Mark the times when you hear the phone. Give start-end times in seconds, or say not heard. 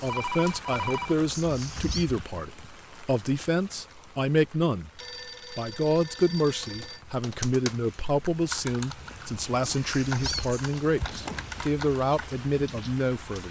0.1-1.2, 5.0-7.0, 11.1-11.7.